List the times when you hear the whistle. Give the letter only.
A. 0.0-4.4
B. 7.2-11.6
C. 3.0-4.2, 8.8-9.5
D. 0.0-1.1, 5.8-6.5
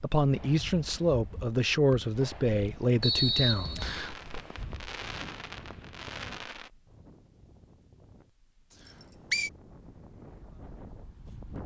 C.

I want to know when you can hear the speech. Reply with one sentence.
You can hear the speech from 0.0 to 4.4 s.